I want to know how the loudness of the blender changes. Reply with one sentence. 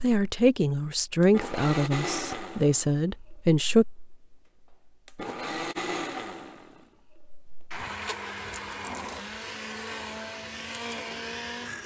The volume of the blender goes down, then up.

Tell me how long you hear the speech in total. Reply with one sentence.
You can hear the speech for 4 seconds altogether.